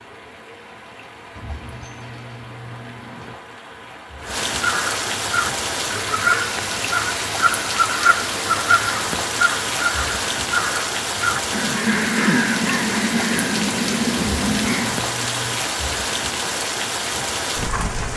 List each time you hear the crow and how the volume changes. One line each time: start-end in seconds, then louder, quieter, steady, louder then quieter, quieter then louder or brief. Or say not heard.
4.6-15.0 steady.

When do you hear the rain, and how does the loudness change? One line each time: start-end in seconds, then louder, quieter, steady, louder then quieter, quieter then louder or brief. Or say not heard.
0.0-18.1 louder.